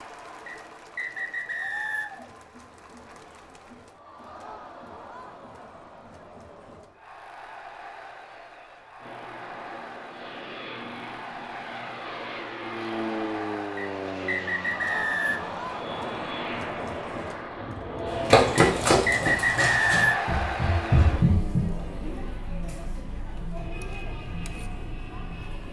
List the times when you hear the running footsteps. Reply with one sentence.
You can hear the running footsteps from 18.1 to 21.6 s.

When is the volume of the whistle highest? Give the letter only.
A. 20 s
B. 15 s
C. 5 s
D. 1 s
A.